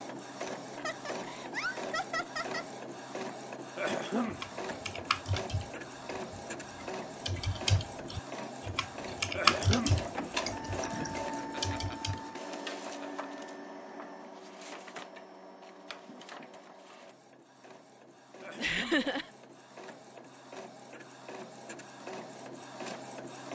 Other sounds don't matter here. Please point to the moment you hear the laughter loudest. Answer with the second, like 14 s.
19 s.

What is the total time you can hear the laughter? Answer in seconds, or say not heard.
5 s.